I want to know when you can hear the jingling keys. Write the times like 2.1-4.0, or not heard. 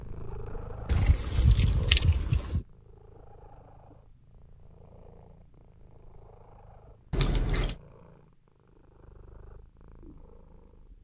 0.8-2.6, 7.1-7.8.